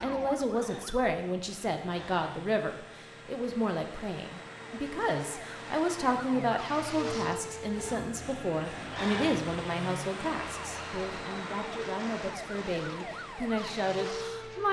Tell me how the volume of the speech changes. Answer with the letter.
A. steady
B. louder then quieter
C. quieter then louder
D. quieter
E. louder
A.